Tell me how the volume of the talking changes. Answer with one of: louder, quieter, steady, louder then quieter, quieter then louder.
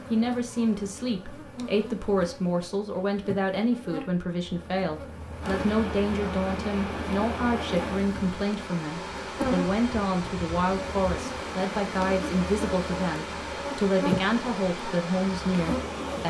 steady.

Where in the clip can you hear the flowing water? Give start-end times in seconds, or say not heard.
5.4-16.2.